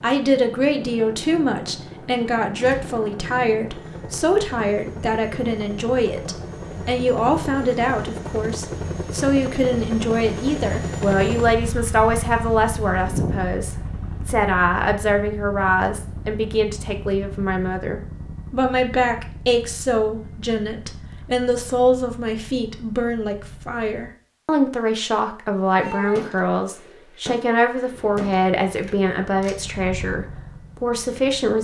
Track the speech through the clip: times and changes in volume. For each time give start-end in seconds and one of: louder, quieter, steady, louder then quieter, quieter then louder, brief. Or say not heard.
0.0-31.5 steady.